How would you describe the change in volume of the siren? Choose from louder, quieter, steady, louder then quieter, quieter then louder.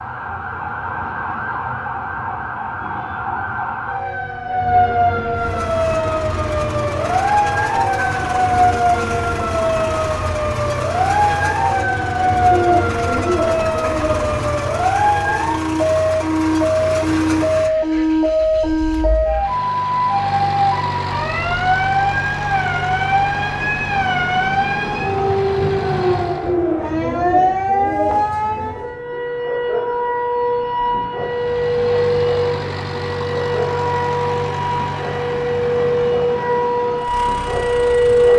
steady.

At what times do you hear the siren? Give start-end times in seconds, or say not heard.
0.0-38.3.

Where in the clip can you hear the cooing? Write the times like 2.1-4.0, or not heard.
12.5-14.3, 26.4-28.9.